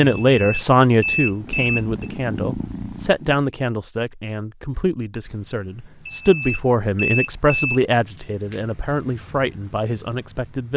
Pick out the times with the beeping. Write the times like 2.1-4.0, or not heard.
0.1-2.1, 6.0-7.8.